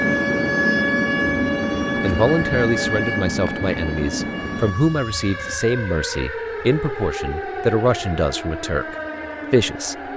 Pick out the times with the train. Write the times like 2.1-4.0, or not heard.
0.0-4.8.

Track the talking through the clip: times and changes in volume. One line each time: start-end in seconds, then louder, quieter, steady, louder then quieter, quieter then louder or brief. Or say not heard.
2.0-9.9 steady.